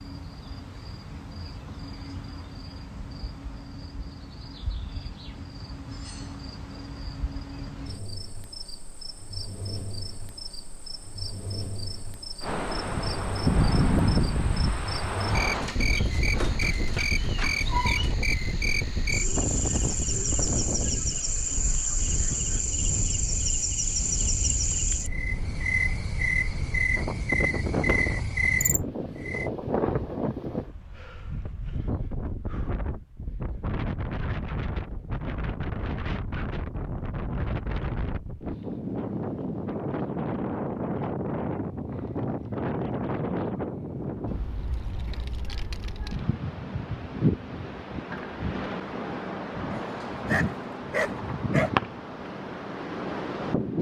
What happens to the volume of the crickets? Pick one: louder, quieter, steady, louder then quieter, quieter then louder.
louder.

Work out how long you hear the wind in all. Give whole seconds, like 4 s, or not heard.
41 s.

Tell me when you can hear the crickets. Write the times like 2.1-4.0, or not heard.
0.0-29.5.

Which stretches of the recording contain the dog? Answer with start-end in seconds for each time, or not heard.
15.4-18.1, 49.8-51.7.